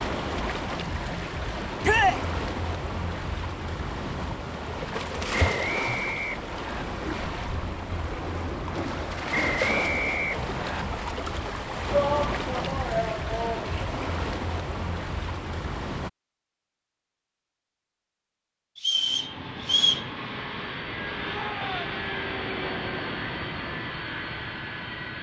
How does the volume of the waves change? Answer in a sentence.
The loudness of the waves stays about the same.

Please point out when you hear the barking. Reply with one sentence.
You can't hear the barking here.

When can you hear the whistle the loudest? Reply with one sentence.
The volume of the whistle peaks at 20 seconds.